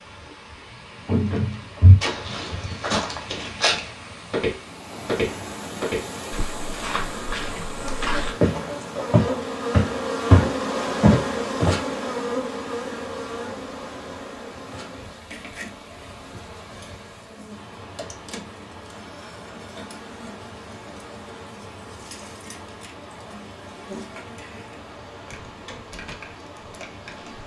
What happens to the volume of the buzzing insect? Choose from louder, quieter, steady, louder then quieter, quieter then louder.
quieter.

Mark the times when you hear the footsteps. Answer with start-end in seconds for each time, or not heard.
1.1-11.8.